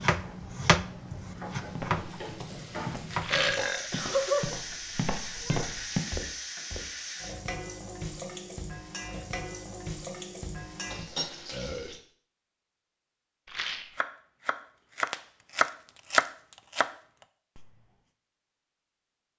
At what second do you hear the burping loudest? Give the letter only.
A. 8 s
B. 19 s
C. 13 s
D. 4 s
D.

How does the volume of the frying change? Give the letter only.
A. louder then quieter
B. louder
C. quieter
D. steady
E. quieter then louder
B.